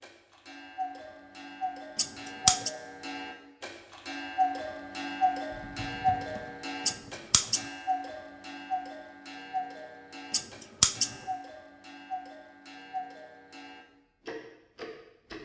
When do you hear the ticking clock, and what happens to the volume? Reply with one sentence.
You can hear the ticking clock from 0.0 to 15.4 s, getting louder then quieter.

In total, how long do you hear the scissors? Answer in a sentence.
You can hear the scissors for 2 seconds altogether.